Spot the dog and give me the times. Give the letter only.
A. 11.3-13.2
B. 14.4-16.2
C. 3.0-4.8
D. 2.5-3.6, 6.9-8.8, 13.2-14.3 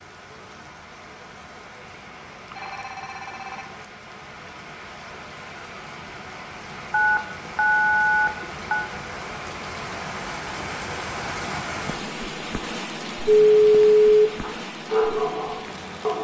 B.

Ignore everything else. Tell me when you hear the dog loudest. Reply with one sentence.
The loudest moment of the dog is at 15 seconds.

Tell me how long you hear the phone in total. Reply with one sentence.
You can hear the phone for 4 seconds altogether.